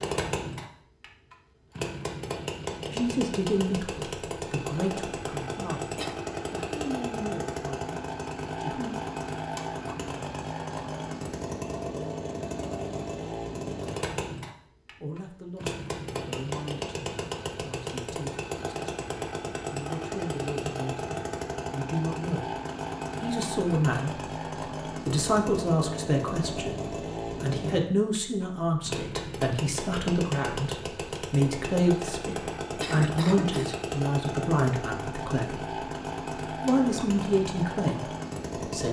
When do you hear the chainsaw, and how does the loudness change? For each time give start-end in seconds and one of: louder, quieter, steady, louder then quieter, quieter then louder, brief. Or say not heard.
0.0-38.8 steady.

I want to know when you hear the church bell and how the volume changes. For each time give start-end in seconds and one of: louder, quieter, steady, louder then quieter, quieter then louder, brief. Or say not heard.
not heard.